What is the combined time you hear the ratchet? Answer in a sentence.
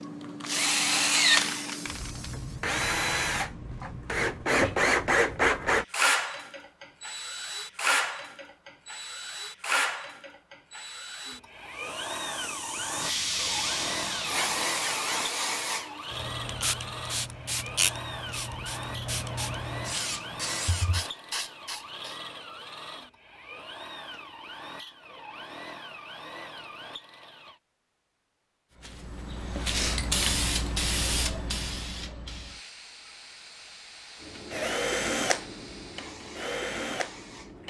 You can't hear the ratchet here.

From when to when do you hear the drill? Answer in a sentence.
You can hear the drill from 0.0 to 27.6 s and from 34.2 to 37.6 s.